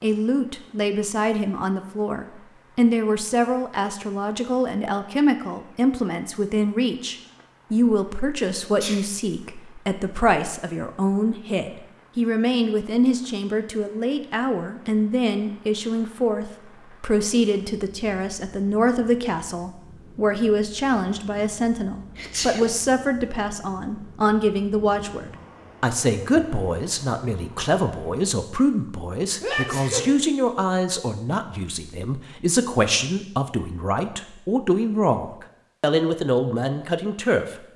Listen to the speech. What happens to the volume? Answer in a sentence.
The volume of the speech stays about the same.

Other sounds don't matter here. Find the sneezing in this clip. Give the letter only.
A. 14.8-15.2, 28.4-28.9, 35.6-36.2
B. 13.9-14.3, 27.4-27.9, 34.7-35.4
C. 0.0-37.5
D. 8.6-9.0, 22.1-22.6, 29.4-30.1
D.